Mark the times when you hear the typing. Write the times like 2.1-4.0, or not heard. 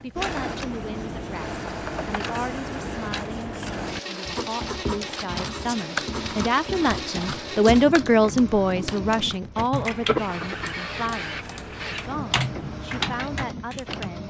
5.0-14.1.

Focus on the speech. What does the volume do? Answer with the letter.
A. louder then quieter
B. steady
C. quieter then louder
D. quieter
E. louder
A.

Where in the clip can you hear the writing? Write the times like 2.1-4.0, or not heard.
0.1-8.0.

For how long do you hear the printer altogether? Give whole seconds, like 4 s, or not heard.
14 s.